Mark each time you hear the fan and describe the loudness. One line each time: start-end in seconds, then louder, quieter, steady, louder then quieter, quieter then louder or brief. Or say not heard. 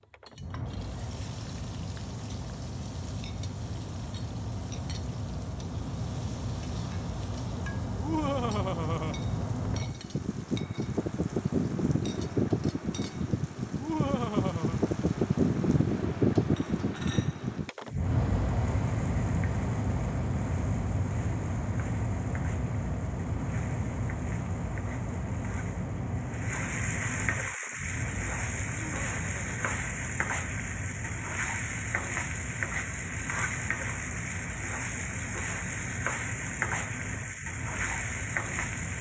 0.0-38.9 louder then quieter.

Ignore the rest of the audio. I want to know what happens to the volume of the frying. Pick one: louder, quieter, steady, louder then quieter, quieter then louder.
louder.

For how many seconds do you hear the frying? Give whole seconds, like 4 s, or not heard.
39 s.